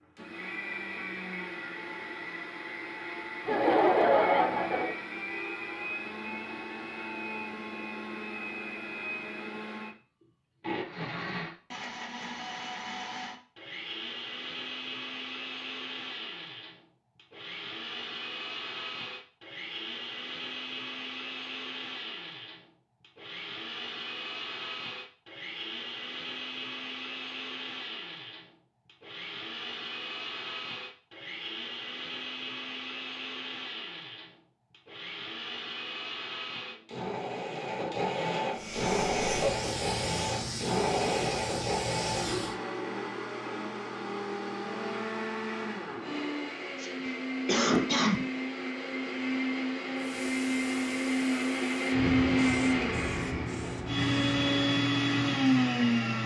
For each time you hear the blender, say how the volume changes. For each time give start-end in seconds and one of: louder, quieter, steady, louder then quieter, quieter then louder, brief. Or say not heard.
0.0-56.2 louder.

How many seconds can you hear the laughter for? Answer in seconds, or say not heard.
3 s.